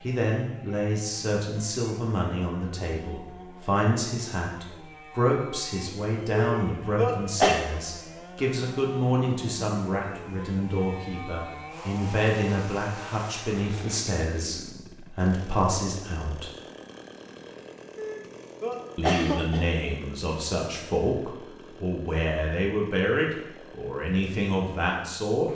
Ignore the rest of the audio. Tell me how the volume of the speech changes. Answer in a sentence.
The volume of the speech stays about the same.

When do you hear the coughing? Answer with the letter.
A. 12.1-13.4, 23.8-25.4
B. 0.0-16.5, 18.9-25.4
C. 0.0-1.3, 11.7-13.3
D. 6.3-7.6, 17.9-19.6
D.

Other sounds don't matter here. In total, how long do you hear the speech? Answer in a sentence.
You can hear the speech for 23 seconds altogether.